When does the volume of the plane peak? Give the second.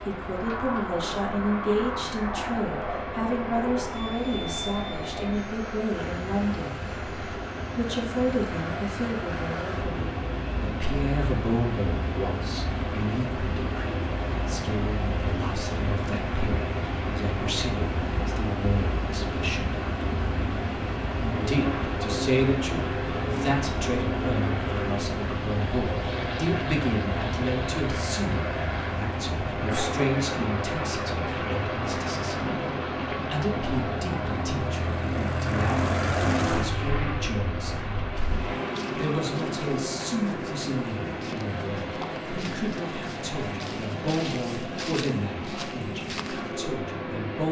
36 s.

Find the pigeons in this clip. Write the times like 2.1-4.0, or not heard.
not heard.